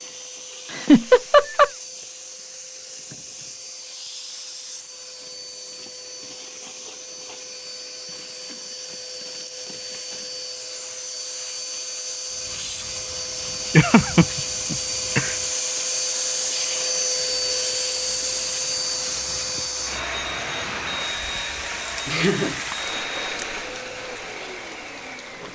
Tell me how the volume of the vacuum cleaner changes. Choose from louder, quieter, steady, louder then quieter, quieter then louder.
louder then quieter.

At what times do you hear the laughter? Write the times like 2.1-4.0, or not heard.
0.7-1.7, 13.7-15.3, 22.1-22.6.